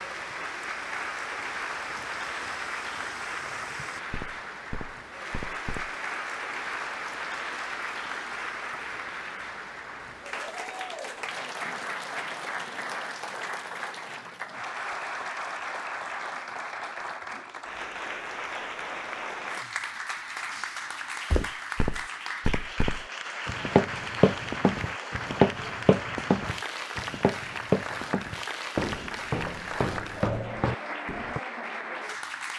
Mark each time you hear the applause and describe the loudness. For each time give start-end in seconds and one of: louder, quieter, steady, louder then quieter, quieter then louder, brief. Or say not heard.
0.0-32.5 steady.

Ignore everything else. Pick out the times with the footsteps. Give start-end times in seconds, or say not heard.
0.1-5.9, 21.3-31.4.